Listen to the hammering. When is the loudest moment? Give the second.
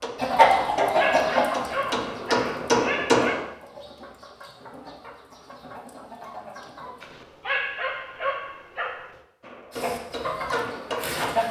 3 s.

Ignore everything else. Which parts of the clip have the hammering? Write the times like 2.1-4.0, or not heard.
0.0-3.5, 9.4-11.4.